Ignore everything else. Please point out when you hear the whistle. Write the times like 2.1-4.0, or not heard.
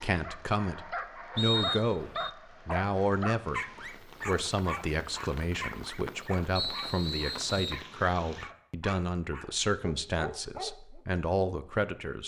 1.4-2.3, 6.5-7.8.